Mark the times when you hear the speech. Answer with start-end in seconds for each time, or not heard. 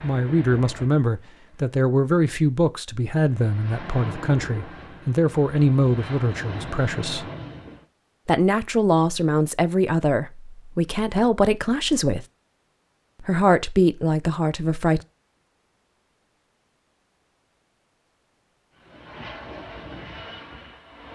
0.0-7.2, 8.2-12.2, 13.2-15.1.